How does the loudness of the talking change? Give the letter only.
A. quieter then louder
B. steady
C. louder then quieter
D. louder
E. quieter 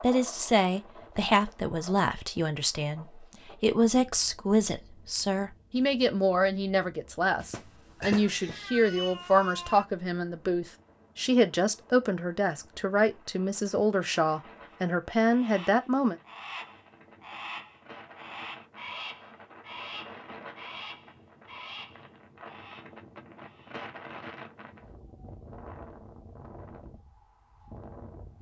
B.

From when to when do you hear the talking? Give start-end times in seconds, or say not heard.
0.0-16.1.